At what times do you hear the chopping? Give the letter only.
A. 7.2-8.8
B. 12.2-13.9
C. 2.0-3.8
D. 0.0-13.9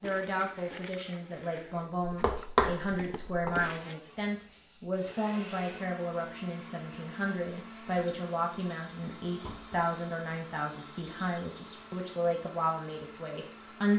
C.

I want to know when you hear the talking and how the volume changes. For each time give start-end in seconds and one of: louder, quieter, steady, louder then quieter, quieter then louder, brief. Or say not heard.
0.0-13.9 steady.